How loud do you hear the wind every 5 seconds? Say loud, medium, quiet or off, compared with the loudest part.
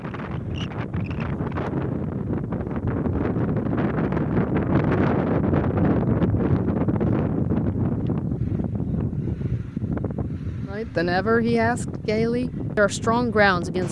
loud, loud, medium.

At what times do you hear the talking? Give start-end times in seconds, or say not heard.
10.7-13.8.